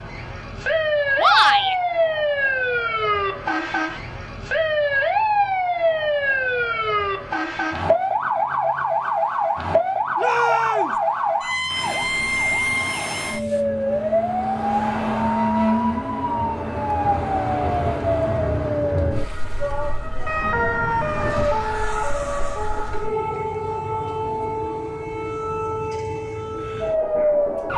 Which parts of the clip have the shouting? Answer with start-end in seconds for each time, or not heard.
1.1-1.8, 10.2-11.0, 19.6-20.9.